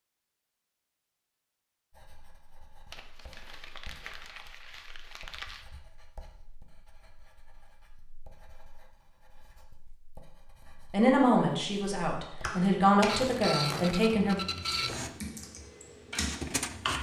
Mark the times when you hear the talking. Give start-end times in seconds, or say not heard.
10.9-14.4.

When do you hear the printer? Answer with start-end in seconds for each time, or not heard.
13.1-16.9.